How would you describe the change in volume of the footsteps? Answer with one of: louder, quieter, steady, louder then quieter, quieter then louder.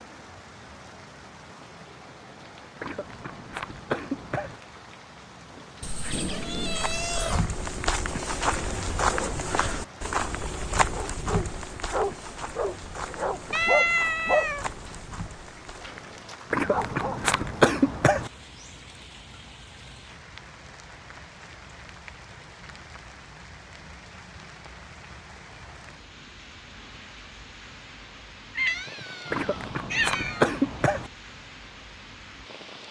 quieter.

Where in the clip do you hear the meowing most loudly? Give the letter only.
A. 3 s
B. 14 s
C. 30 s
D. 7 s
B.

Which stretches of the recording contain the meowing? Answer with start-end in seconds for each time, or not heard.
5.8-7.5, 13.5-14.7, 28.6-30.4.